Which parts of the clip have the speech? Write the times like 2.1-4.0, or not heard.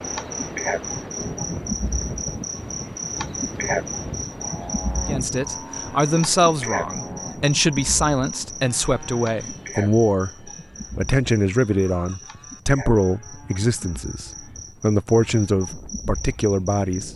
5.0-10.3, 10.9-17.1.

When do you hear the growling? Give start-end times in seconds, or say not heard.
not heard.